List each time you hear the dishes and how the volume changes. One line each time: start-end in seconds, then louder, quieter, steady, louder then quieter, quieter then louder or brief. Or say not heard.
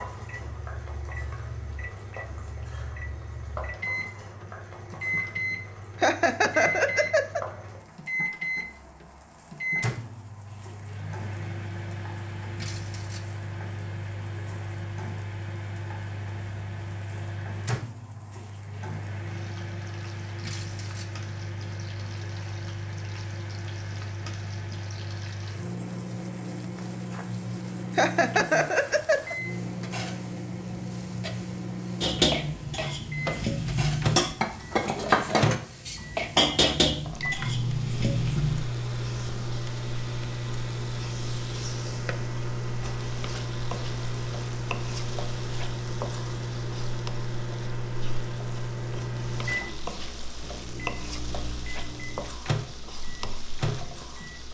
32.0-38.6 louder then quieter.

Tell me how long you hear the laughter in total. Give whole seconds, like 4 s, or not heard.
3 s.